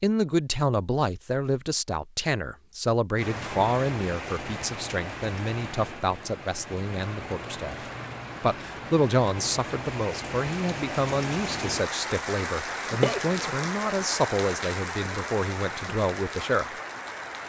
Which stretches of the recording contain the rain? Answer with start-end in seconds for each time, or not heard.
3.1-17.4.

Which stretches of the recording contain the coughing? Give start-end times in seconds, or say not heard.
13.0-13.7.